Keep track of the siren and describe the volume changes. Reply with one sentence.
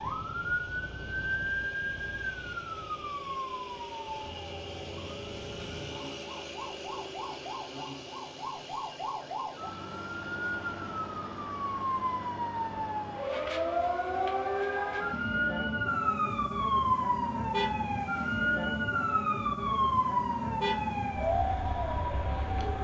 The loudness of the siren goes down, then up.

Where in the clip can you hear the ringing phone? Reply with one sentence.
The ringing phone can't be heard in this clip.